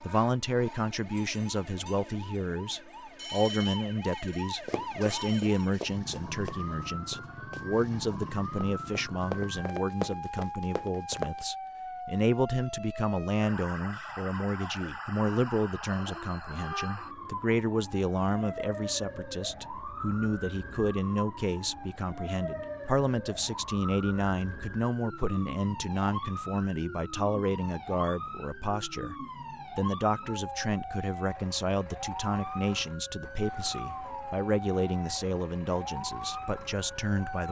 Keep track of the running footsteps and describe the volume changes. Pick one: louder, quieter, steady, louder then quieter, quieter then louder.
quieter then louder.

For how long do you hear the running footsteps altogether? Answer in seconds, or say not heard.
7 s.